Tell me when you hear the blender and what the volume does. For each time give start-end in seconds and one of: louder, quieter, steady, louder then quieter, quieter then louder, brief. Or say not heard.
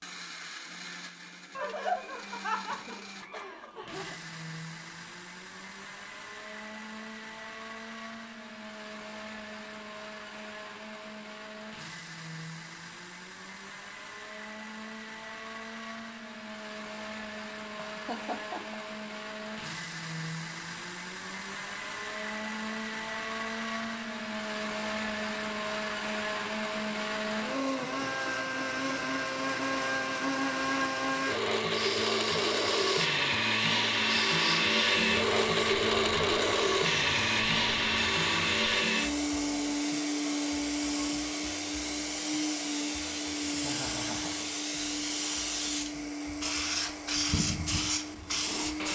0.0-48.9 louder then quieter.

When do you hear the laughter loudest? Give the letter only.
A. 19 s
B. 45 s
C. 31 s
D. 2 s
D.